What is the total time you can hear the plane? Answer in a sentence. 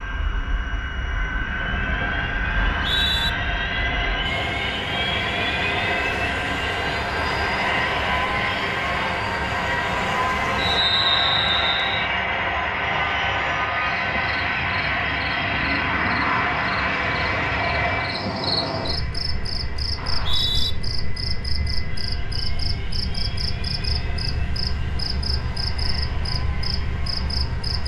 You can hear the plane for 28 seconds altogether.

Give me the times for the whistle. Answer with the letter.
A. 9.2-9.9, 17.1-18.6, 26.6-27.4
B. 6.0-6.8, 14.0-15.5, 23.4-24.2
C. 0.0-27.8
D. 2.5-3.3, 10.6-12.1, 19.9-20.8
D.